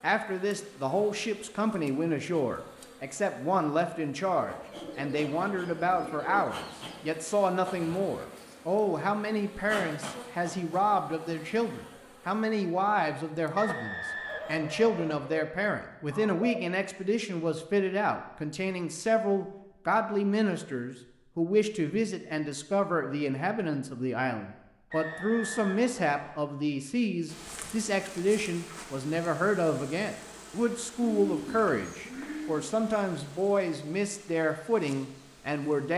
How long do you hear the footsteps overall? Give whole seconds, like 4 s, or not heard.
not heard.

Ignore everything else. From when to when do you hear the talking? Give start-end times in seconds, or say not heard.
0.0-35.9.